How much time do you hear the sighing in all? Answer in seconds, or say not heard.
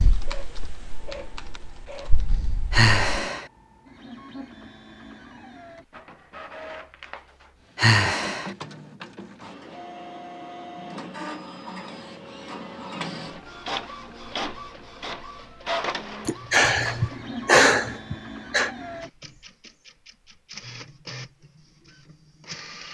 4 s.